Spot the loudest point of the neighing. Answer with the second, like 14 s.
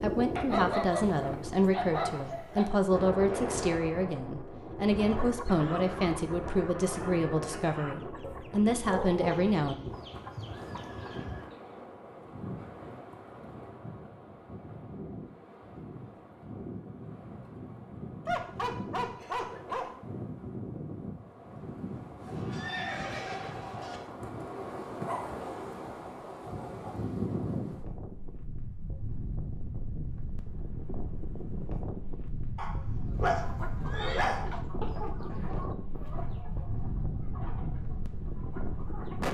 23 s.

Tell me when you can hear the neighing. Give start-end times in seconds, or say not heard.
10.1-11.5, 22.2-24.0, 33.1-34.3.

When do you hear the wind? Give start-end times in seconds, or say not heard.
0.0-39.2.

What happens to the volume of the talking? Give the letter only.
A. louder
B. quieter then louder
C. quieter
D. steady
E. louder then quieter
D.